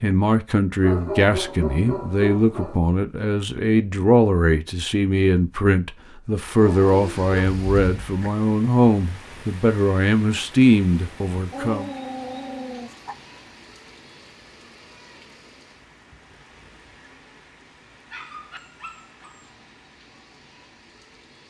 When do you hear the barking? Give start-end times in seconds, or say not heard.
0.8-2.8, 6.6-8.3, 11.5-13.2, 18.1-19.5.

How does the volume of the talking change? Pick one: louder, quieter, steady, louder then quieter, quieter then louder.
steady.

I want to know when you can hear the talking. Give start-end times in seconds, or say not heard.
0.0-11.9.